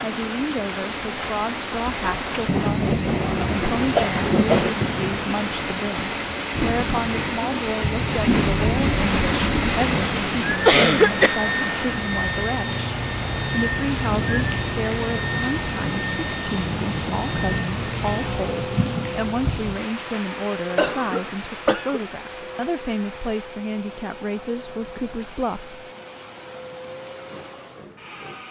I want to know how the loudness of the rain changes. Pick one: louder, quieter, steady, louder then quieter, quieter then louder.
quieter.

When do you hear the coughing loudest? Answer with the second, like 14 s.
11 s.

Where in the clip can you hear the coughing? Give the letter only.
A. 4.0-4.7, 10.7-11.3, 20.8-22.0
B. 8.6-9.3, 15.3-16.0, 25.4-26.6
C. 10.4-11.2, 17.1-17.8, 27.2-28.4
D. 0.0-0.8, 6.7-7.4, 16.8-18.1
A.